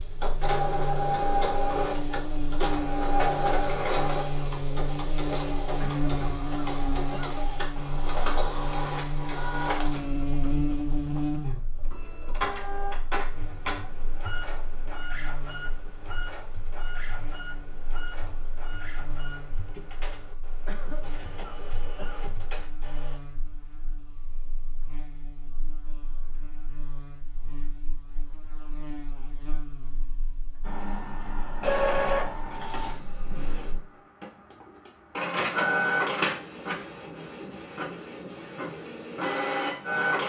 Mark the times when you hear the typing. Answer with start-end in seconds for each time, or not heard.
13.3-22.7.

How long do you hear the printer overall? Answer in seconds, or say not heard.
33 s.